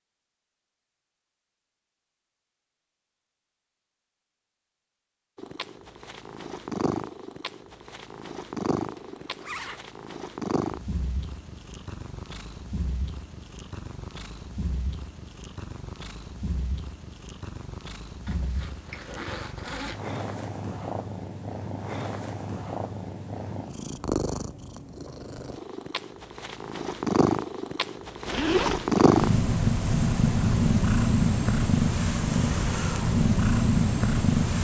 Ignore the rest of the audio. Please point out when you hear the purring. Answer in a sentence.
You can hear the purring from 5.3 to 34.5 s.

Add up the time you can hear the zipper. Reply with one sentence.
You can hear the zipper for 4 seconds altogether.